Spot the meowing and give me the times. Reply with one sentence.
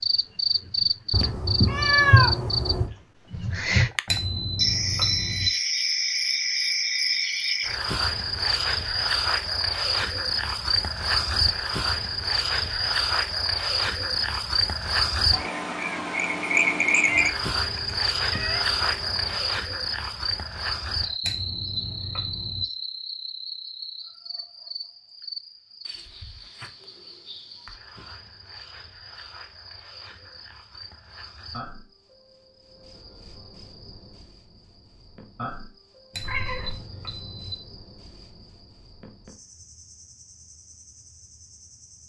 You can hear the meowing from 1.1 to 2.9 s, from 17.1 to 19.4 s and from 36.2 to 36.9 s.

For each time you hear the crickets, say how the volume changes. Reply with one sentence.
You can hear the crickets from 0.0 to 42.0 s, getting quieter.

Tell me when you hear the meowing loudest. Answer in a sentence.
The loudest moment of the meowing is at 2 seconds.